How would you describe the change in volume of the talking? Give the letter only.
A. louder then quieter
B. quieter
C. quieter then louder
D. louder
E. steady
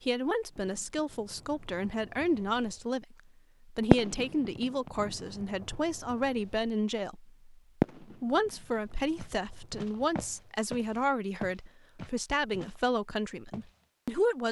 E.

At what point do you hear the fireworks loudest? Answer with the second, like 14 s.
4 s.